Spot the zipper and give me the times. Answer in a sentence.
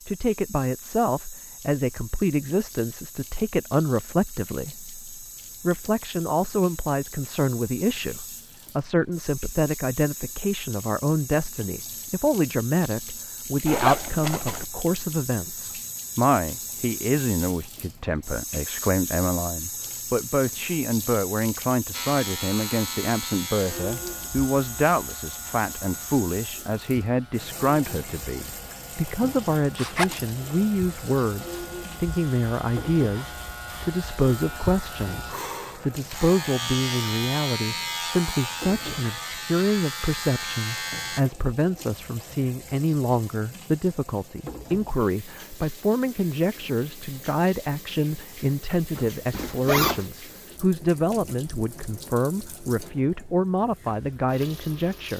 The zipper can be heard from 13.7 to 14.7 s, from 29.8 to 30.2 s and from 49.0 to 50.0 s.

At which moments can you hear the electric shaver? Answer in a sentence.
The electric shaver can be heard from 21.9 to 41.2 s.